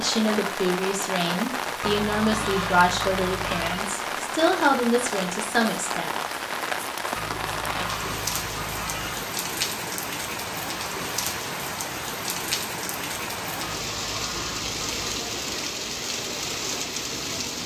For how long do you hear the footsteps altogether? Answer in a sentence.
The footsteps can't be heard in this clip.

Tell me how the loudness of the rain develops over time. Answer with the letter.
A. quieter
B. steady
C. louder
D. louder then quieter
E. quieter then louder
B.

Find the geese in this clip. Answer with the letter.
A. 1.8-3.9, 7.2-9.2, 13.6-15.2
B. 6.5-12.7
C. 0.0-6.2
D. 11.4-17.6
A.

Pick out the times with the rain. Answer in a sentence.
The rain can be heard from 0.0 to 17.6 s.